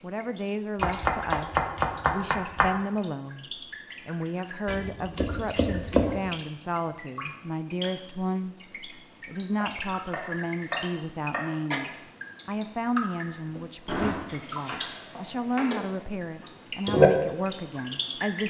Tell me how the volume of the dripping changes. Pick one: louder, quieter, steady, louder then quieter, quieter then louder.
louder.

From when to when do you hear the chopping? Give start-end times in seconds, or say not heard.
0.8-2.7, 4.7-6.2, 9.6-11.6, 13.8-16.1.